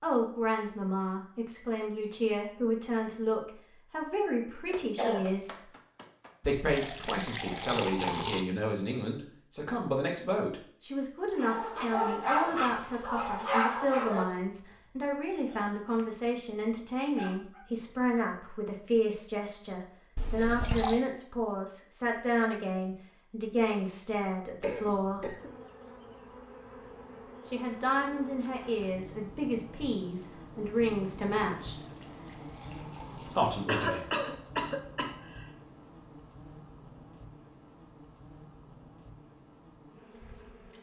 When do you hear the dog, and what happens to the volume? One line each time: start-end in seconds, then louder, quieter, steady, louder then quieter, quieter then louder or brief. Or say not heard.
11.3-17.7 quieter then louder.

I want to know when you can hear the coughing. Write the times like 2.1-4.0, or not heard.
4.7-6.5, 24.6-25.6, 33.6-35.5.